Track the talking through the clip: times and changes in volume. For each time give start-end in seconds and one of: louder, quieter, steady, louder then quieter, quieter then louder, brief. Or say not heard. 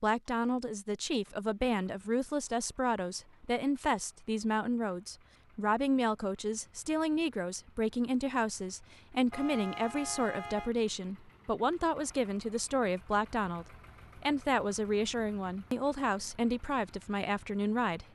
0.0-18.1 steady.